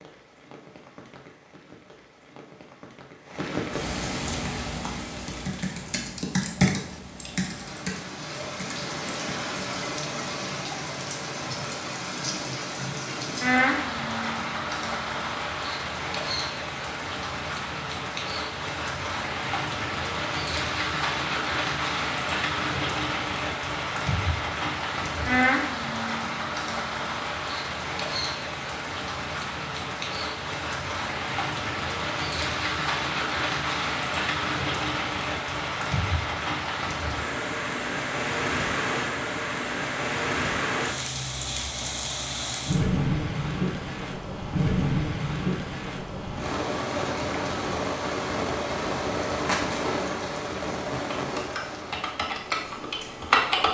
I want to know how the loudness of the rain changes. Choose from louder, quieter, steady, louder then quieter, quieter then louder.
louder.